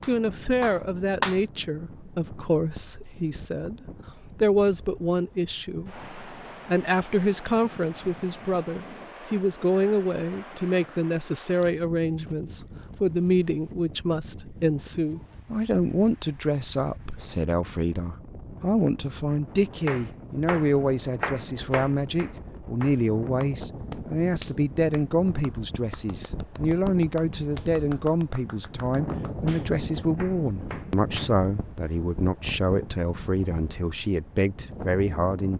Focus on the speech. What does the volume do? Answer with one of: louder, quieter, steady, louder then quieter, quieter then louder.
steady.